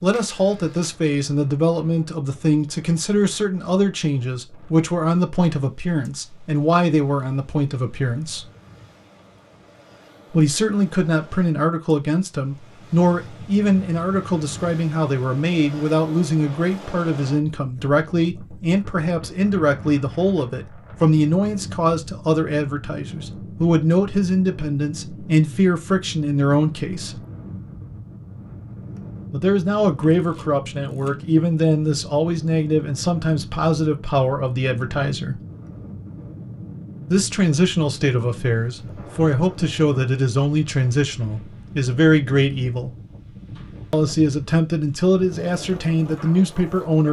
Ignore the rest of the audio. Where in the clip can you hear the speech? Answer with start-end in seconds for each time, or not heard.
0.0-8.5, 10.3-27.2, 29.3-35.4, 37.1-42.9, 43.9-47.0.